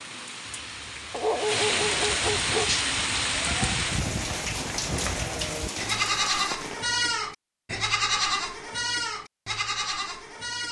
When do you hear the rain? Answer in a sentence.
The rain can be heard from 0.0 to 6.9 s.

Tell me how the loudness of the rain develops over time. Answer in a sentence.
The loudness of the rain goes up, then down.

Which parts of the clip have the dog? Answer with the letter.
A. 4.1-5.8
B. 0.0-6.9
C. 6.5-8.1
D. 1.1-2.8
D.